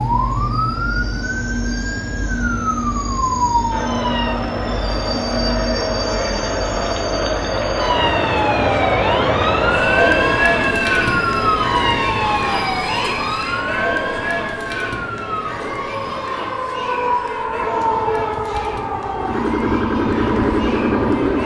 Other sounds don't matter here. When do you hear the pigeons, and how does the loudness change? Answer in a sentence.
The pigeons can't be heard in this clip.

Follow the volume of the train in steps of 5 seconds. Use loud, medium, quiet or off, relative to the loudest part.
loud, loud, loud, medium, loud.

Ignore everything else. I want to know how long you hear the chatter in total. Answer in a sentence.
The chatter can be heard for 18 seconds in total.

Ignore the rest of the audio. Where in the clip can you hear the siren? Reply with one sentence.
You can hear the siren from 0.0 to 4.3 s and from 7.8 to 21.4 s.